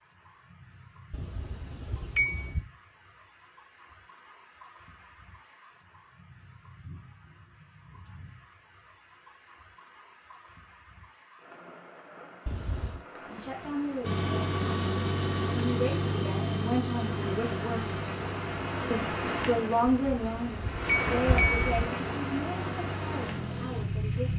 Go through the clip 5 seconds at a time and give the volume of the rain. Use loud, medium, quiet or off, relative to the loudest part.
quiet, quiet, quiet, loud, loud.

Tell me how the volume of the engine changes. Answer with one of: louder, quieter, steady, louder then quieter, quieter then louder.
quieter then louder.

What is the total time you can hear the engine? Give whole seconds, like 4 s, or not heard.
10 s.